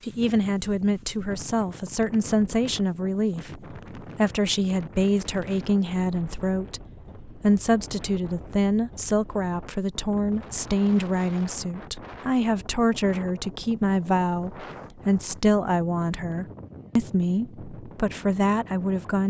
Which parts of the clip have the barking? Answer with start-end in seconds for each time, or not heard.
not heard.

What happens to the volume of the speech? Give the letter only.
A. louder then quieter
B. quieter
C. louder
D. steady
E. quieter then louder
D.